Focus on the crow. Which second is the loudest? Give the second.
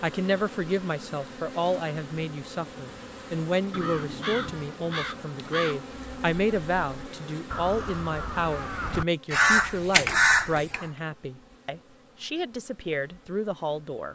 10 s.